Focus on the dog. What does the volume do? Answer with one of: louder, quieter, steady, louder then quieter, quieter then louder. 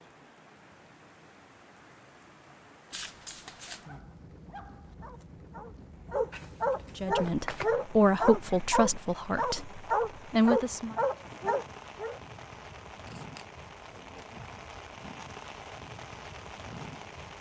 louder.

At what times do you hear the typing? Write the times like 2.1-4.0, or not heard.
not heard.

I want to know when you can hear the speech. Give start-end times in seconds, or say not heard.
7.0-10.9.